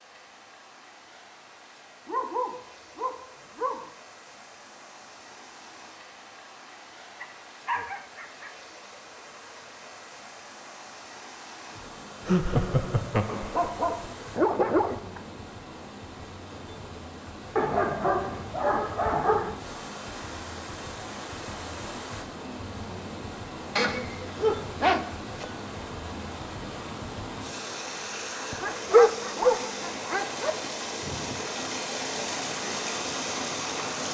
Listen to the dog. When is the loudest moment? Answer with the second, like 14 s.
29 s.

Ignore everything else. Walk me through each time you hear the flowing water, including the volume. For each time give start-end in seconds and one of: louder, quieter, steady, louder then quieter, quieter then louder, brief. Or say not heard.
0.0-34.0 louder.